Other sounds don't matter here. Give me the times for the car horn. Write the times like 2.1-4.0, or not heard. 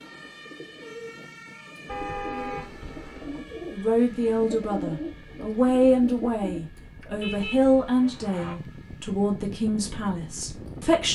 1.9-3.4, 7.2-8.6.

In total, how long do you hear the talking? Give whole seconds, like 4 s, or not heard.
7 s.